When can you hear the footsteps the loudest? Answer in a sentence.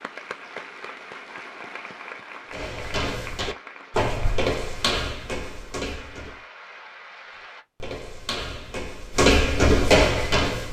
The volume of the footsteps peaks at 10 seconds.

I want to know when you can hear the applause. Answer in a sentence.
You can hear the applause from 0.0 to 7.7 s.